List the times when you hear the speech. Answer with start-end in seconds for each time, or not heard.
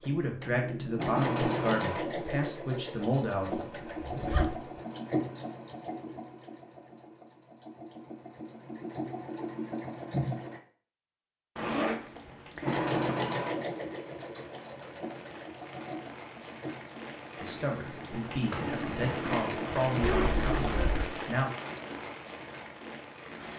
0.0-3.6, 17.4-21.5.